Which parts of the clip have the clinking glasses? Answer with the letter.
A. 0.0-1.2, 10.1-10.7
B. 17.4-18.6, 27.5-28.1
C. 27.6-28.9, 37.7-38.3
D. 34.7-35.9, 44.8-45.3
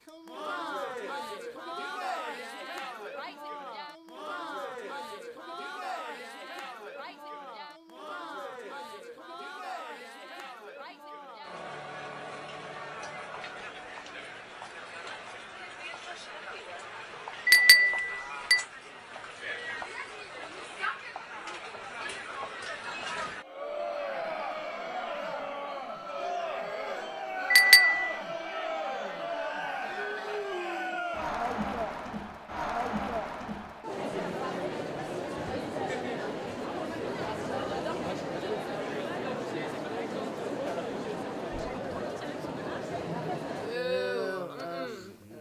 B.